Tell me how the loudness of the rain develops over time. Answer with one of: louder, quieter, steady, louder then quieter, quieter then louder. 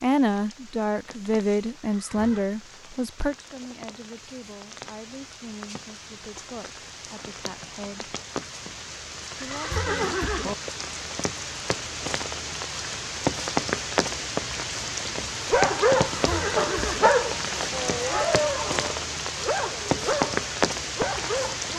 louder.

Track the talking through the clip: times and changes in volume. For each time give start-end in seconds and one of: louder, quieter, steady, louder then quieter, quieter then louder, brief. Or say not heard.
0.0-8.2 quieter
9.3-10.2 brief.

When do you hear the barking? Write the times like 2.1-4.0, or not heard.
15.4-21.7.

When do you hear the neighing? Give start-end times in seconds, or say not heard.
1.9-2.5, 9.3-10.6, 16.1-17.1.